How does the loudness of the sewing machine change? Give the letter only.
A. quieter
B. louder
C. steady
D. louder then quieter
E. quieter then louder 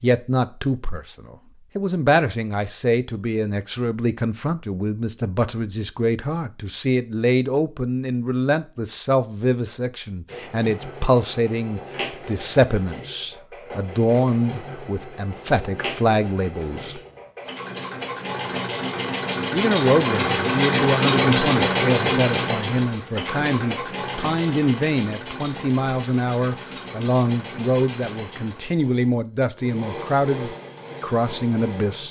D.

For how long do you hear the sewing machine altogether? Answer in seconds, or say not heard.
22 s.